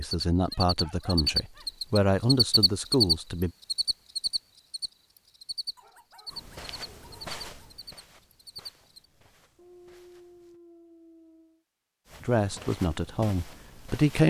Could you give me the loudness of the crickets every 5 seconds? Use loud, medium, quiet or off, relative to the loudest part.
loud, quiet, off.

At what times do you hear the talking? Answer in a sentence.
The talking can be heard from 0.0 to 3.5 s and from 12.2 to 14.2 s.